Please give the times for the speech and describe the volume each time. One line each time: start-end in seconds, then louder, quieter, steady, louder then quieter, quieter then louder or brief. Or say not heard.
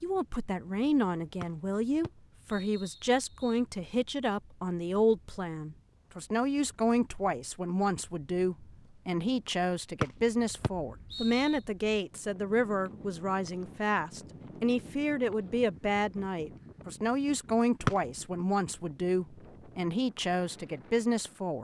0.0-21.5 steady.